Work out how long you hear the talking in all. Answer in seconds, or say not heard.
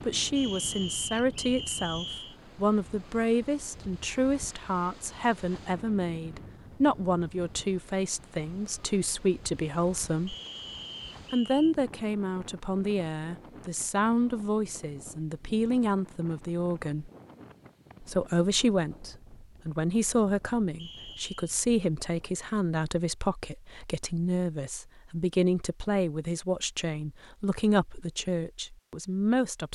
28 s.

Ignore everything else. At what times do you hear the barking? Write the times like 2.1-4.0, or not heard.
not heard.